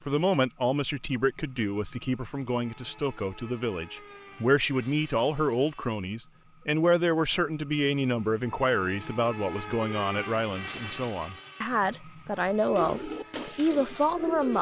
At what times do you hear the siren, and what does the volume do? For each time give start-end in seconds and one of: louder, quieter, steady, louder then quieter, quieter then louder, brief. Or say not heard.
not heard.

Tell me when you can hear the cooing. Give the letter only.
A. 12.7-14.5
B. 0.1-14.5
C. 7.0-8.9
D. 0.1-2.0
A.